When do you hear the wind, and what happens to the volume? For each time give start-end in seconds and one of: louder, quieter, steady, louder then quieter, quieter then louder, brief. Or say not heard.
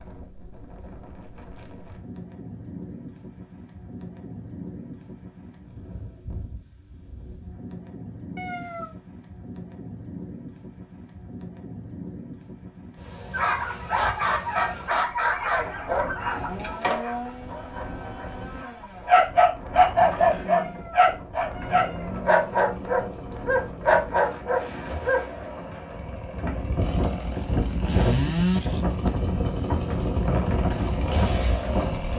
0.0-32.1 louder.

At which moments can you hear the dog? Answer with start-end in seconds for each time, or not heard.
13.3-25.2.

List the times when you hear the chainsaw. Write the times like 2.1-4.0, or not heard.
16.2-32.1.